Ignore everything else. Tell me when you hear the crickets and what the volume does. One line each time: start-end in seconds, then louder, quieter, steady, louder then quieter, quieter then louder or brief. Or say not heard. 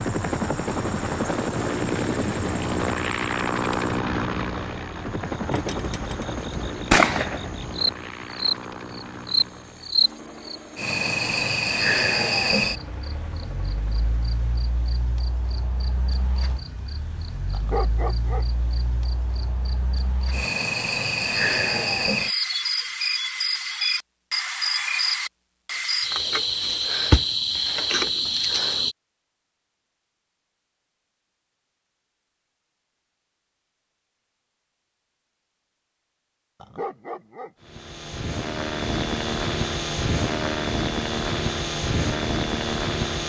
0.0-28.9 louder.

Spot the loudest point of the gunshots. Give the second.
7 s.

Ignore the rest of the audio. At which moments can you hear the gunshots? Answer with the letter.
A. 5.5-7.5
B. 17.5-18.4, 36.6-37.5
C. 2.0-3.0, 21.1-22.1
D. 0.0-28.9
A.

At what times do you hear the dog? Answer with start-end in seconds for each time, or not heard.
17.5-18.4, 36.6-37.5.